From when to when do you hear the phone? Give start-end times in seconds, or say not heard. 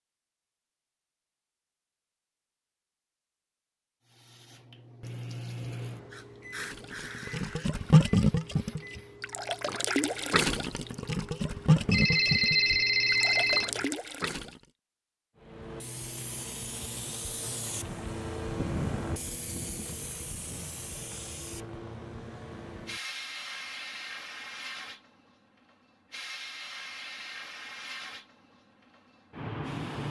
11.9-13.7.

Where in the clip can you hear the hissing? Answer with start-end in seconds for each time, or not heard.
4.0-9.2, 15.4-30.0.